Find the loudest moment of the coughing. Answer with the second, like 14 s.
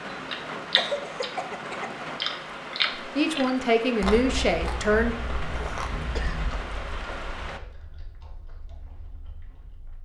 1 s.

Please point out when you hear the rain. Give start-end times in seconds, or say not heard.
0.0-7.6.